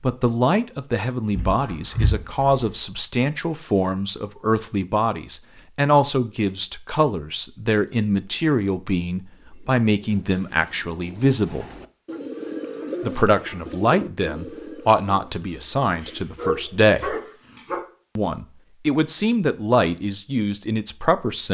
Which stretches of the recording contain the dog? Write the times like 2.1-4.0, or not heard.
1.3-2.7, 15.8-17.8.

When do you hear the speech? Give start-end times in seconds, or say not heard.
0.0-11.7, 13.0-17.1, 18.1-21.4.